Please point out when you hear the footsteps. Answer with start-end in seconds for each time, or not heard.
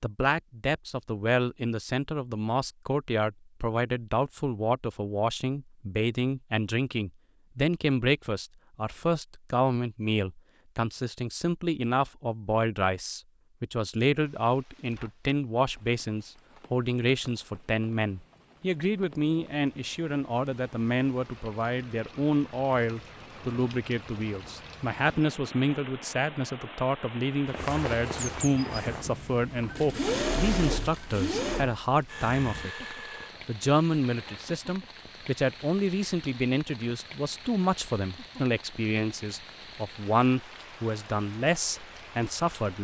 27.4-29.1.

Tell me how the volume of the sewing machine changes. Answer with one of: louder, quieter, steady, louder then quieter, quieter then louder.
quieter.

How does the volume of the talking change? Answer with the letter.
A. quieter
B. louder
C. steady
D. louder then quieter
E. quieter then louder
C.